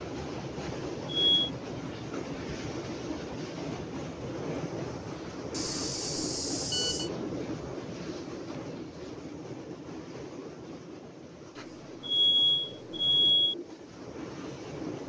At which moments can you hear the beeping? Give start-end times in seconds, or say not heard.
0.6-1.5, 5.5-7.1, 11.6-13.6.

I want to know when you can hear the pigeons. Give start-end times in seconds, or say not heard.
not heard.